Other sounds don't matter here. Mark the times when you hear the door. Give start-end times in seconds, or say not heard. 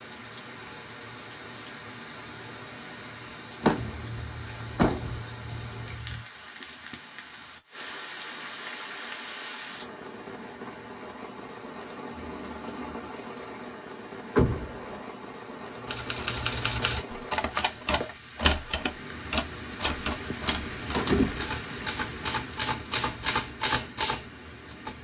3.6-5.2, 14.3-15.1, 20.9-21.6.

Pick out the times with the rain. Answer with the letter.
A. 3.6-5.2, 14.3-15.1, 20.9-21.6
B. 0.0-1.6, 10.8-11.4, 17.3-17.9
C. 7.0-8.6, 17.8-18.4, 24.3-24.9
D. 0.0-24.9
D.